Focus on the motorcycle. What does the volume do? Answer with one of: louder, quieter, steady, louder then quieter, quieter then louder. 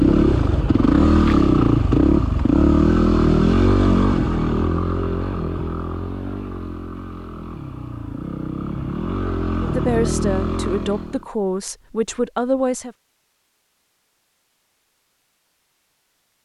quieter then louder.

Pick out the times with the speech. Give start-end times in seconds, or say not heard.
9.6-12.9.